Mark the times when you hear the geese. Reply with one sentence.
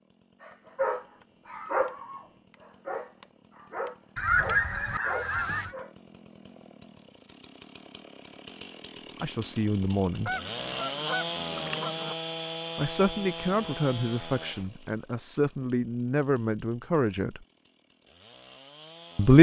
The geese can be heard from 4.2 to 5.8 s and from 10.2 to 12.2 s.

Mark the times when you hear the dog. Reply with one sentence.
You can hear the dog from 0.4 to 5.9 s.